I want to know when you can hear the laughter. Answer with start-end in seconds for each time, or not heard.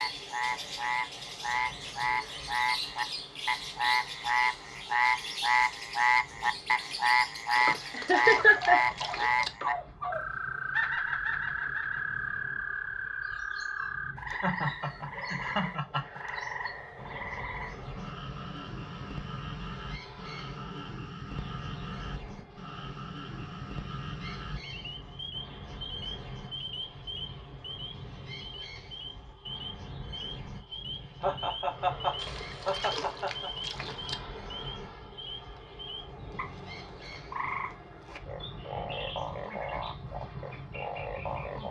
7.7-9.7, 14.3-16.2, 31.2-33.5.